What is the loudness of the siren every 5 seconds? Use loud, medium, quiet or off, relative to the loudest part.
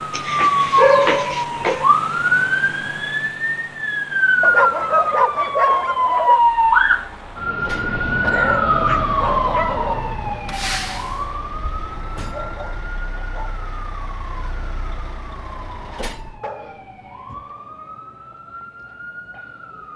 loud, loud, quiet, quiet.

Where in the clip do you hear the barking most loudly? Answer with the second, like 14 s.
1 s.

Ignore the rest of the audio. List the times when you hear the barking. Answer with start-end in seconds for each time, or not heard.
0.1-1.9, 4.4-6.4, 8.2-10.2, 12.3-13.7, 16.4-17.5.